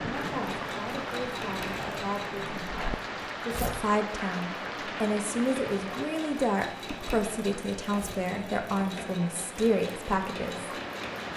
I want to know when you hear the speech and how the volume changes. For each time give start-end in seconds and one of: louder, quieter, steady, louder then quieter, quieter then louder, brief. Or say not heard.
0.0-10.7 louder.